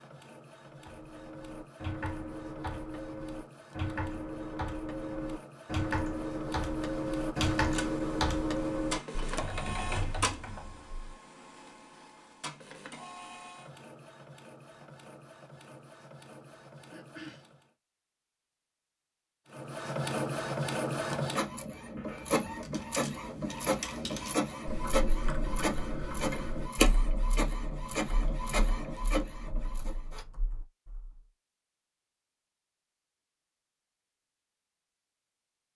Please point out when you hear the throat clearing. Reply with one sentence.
You can hear the throat clearing from 16.9 to 17.4 s.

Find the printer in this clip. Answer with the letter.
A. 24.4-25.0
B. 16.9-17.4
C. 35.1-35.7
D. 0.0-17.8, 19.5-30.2
D.